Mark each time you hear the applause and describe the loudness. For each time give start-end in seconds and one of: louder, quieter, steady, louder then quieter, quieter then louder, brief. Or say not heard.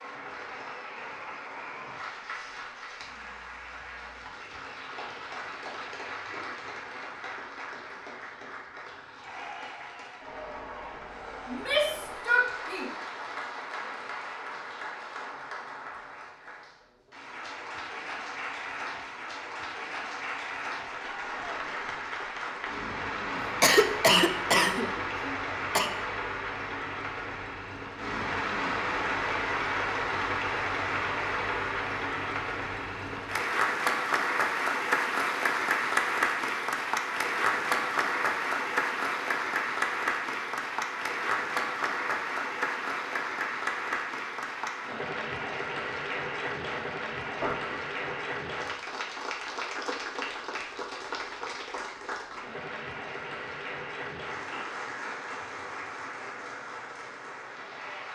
0.0-58.1 louder then quieter.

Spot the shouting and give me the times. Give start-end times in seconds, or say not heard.
11.4-12.9.